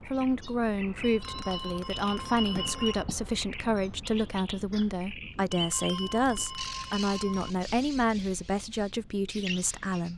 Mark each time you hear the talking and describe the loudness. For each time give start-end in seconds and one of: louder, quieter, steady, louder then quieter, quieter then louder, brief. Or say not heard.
0.0-10.1 steady.